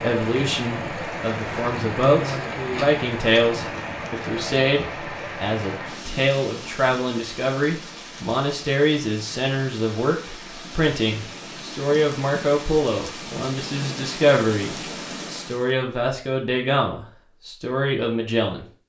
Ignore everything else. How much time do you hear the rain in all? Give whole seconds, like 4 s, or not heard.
16 s.